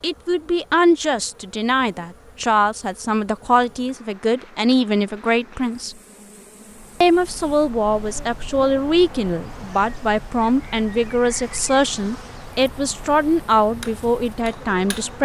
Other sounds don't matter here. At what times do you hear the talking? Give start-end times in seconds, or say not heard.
0.0-6.0, 7.0-15.1.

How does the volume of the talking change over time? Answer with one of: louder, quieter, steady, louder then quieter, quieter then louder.
steady.